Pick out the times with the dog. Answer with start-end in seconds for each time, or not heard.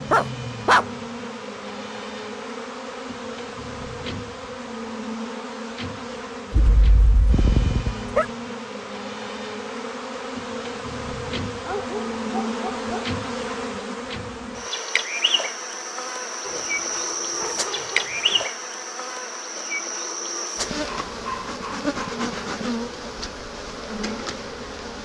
0.1-0.8, 6.5-8.2, 11.7-13.1, 16.4-18.4, 20.9-22.6.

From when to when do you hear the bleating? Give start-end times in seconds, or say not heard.
not heard.